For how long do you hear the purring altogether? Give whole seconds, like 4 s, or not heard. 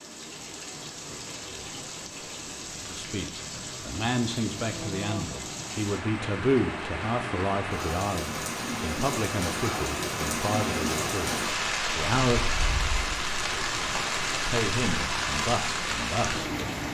not heard.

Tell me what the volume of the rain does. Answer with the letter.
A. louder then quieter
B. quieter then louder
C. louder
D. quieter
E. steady
C.